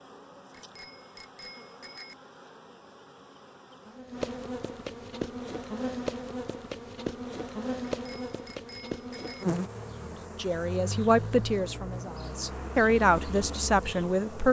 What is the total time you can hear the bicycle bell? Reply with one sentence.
The bicycle bell can be heard for 3 seconds in total.